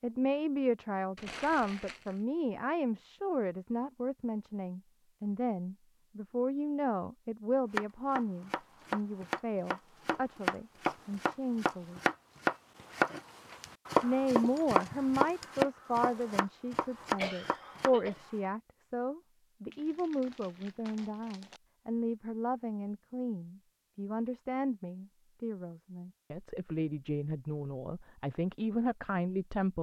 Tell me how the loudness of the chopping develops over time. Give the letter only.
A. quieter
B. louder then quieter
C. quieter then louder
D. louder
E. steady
B.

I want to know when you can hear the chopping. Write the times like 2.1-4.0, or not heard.
7.7-18.4.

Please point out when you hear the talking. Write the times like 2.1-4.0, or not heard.
0.0-12.0, 14.0-29.7.